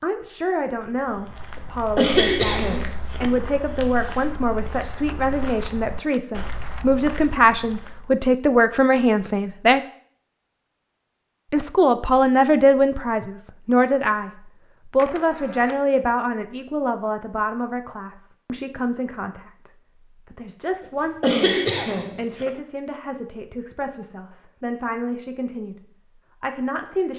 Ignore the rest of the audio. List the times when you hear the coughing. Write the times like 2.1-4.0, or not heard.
1.6-3.2, 20.8-22.6.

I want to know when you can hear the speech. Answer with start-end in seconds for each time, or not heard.
0.0-9.8, 11.5-19.7, 20.3-21.6, 22.1-25.8, 26.4-27.1.